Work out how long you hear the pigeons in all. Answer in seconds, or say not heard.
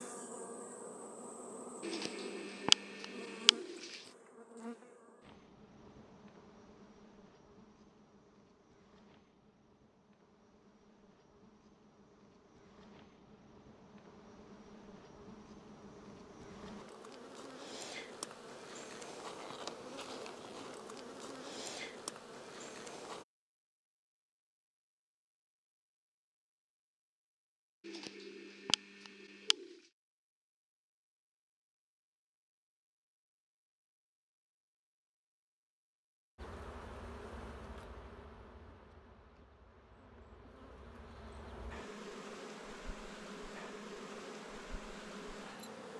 4 s.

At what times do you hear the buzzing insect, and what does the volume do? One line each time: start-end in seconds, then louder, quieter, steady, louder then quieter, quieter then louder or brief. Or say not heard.
0.0-23.2 quieter then louder
36.4-45.9 quieter then louder.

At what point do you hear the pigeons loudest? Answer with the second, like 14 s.
3 s.